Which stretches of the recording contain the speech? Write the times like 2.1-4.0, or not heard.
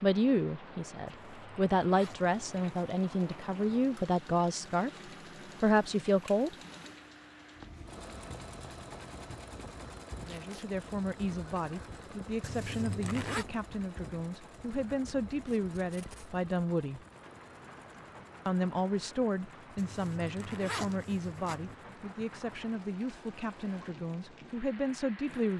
0.0-4.9, 5.6-6.5, 10.2-17.0, 18.4-25.5.